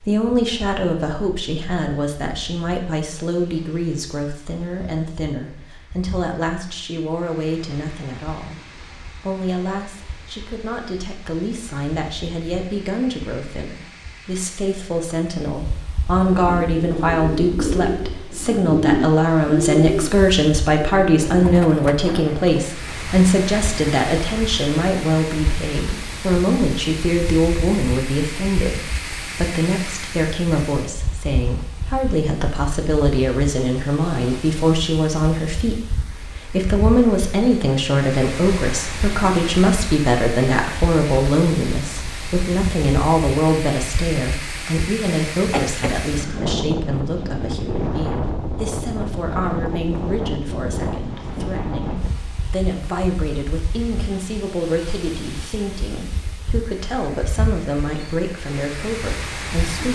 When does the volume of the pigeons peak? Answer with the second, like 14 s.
19 s.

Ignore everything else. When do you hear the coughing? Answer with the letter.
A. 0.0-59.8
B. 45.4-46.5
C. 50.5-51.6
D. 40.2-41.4
B.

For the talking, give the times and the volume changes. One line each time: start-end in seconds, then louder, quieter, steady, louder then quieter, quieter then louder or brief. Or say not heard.
0.0-59.8 louder then quieter.